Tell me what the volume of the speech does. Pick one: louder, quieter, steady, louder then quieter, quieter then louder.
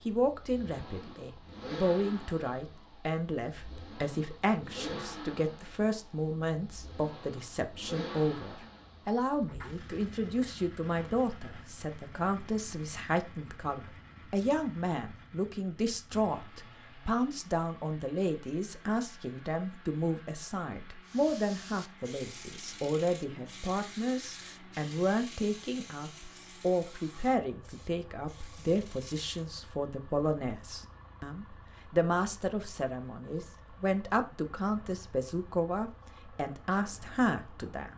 steady.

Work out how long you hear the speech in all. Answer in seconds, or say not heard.
38 s.